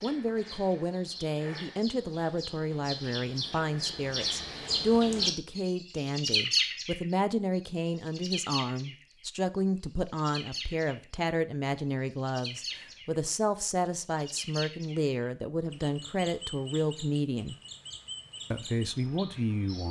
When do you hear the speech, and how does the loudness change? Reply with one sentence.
You can hear the speech from 0.0 to 17.6 s, at a steady volume; and briefly from 18.5 to 19.8 s.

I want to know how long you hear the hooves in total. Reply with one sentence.
You can't hear the hooves here.